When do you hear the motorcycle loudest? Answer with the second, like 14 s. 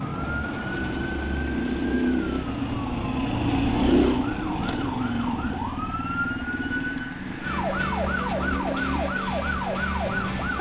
4 s.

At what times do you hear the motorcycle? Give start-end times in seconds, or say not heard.
0.0-10.5.